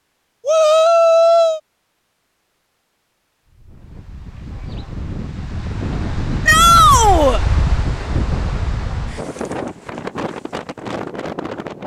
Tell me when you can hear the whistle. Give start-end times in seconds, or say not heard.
not heard.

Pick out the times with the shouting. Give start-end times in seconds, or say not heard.
0.5-1.6, 6.5-7.4.